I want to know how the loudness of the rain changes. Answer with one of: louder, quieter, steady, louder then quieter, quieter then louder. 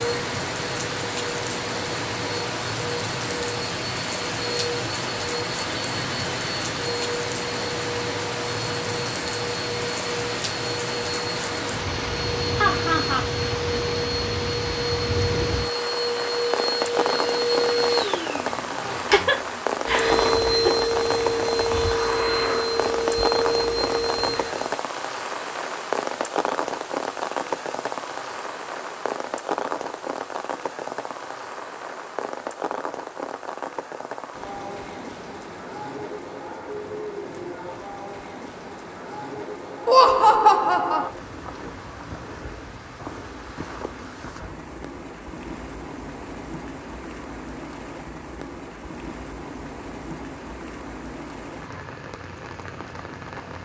quieter.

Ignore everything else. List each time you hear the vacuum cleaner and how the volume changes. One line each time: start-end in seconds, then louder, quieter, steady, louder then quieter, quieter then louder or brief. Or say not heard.
0.0-24.7 louder.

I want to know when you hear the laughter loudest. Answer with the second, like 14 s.
40 s.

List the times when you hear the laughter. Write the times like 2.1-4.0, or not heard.
12.6-13.2, 18.9-20.9, 39.9-41.1.